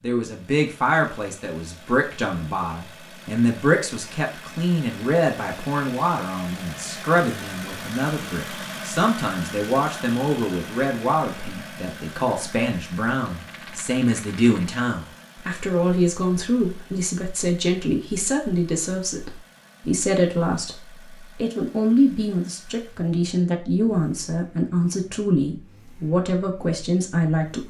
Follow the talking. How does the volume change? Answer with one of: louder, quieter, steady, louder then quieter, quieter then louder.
steady.